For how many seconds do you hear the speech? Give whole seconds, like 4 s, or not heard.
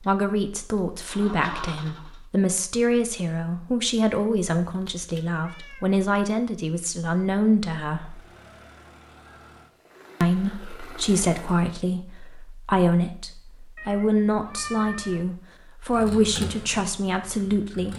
16 s.